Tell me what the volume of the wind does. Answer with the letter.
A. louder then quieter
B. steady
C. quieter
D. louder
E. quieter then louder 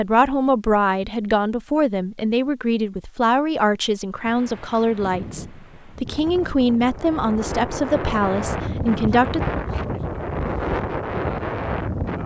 D.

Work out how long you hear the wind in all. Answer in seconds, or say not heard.
8 s.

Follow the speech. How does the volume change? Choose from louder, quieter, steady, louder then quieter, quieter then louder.
steady.